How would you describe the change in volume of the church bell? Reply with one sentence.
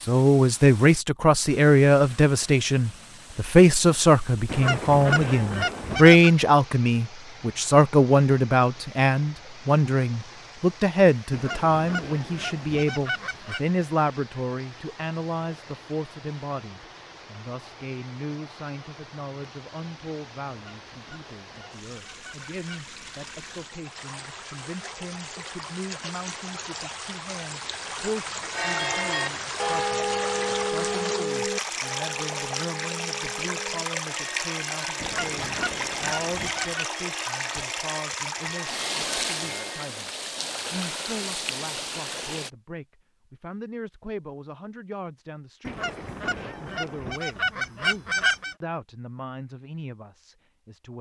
The volume of the church bell goes down.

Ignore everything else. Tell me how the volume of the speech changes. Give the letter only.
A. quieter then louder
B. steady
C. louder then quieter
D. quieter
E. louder
D.